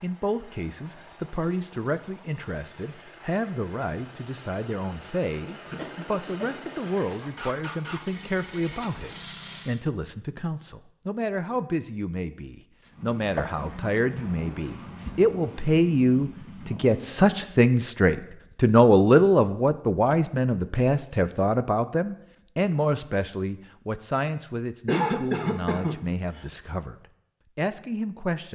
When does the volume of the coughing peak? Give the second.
25 s.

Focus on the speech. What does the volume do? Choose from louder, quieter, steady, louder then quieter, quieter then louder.
louder then quieter.